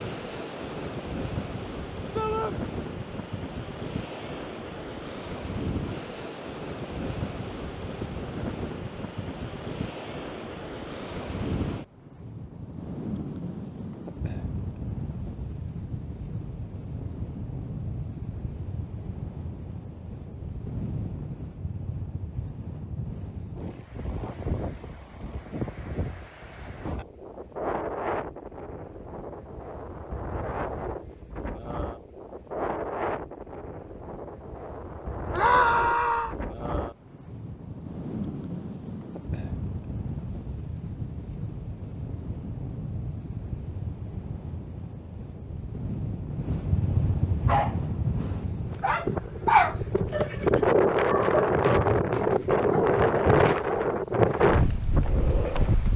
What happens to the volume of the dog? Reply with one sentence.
The loudness of the dog goes up, then down.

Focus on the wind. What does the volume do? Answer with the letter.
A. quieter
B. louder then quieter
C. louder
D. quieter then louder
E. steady
C.